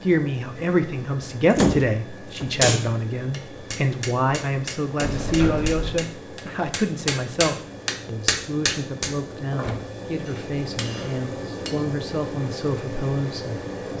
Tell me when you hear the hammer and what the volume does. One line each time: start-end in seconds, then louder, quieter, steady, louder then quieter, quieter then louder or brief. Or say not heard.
3.3-11.8 louder then quieter.